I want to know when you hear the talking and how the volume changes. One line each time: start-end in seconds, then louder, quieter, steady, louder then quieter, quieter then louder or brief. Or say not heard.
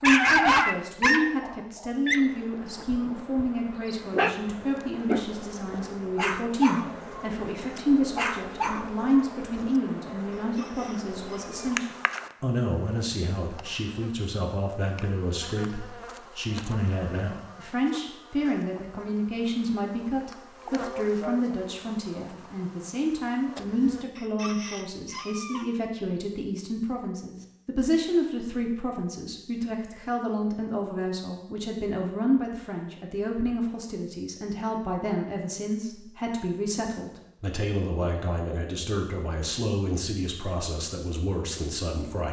0.0-42.2 steady.